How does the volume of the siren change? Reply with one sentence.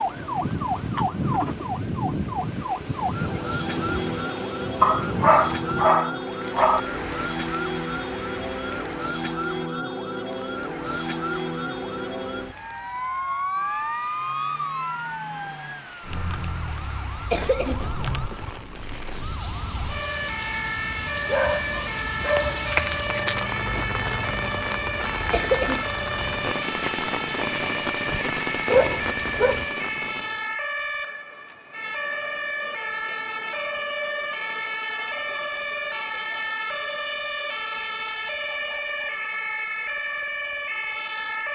The loudness of the siren stays about the same.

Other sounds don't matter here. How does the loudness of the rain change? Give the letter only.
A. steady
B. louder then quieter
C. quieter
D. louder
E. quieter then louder
E.